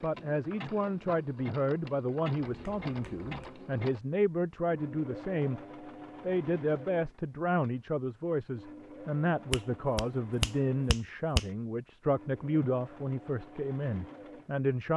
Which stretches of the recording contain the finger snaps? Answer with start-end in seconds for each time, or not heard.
2.5-3.5, 9.5-11.4.